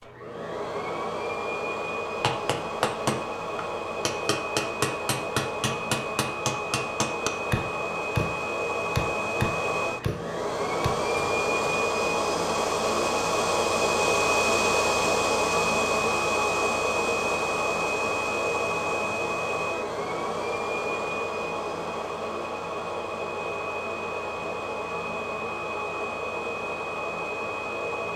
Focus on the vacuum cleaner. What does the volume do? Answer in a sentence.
The loudness of the vacuum cleaner goes up, then down.